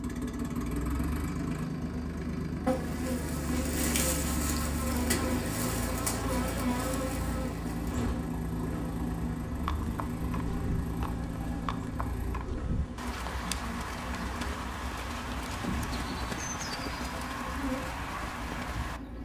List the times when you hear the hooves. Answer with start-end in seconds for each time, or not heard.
9.4-19.0.